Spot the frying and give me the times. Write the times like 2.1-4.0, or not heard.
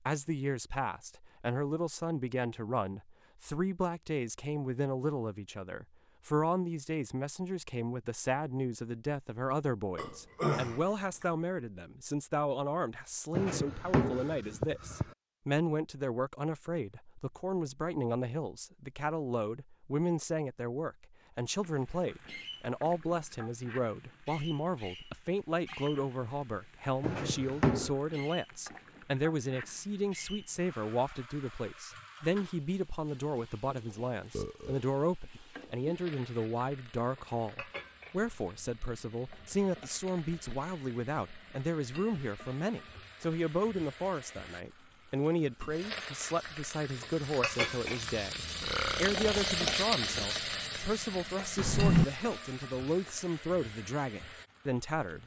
21.4-55.2.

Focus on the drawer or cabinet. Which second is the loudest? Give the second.
52 s.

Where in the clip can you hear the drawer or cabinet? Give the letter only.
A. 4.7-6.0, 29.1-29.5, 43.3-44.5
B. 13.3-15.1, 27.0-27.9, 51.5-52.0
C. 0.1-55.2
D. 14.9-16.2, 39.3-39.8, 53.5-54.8
B.